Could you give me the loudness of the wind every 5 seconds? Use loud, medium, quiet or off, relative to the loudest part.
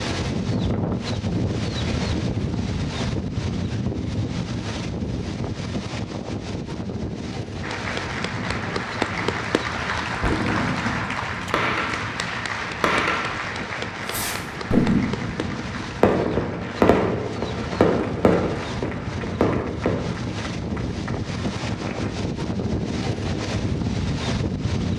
loud, medium, medium, medium, loud.